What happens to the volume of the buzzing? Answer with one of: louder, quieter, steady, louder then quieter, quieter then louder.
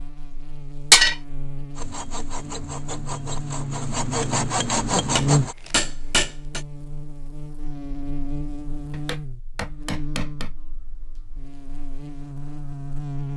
louder then quieter.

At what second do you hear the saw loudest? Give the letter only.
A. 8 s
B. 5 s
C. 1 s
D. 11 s
B.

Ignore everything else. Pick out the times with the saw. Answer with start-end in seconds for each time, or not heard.
1.8-5.5.